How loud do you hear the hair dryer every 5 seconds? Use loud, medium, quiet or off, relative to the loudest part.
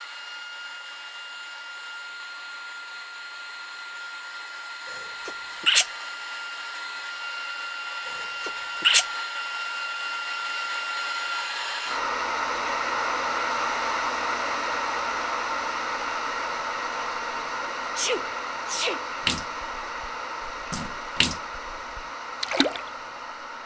medium, medium, loud, loud, medium.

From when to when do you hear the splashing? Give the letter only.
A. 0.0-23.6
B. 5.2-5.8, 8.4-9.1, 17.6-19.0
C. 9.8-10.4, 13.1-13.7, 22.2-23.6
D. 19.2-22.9
D.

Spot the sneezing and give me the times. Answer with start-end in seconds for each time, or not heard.
5.2-5.8, 8.4-9.1, 17.6-19.0.